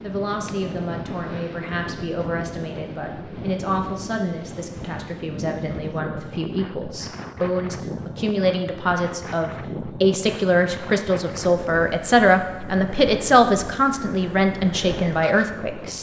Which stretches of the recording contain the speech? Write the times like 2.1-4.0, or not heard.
0.0-15.9.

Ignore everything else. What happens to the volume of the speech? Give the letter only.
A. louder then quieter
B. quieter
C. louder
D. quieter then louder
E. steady
C.